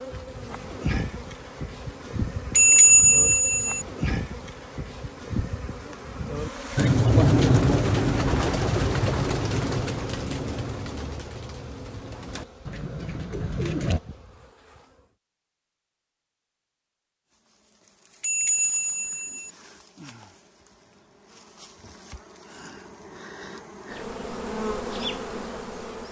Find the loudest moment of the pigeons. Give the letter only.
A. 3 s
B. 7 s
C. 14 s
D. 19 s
B.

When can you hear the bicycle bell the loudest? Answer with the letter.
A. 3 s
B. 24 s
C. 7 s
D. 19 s
A.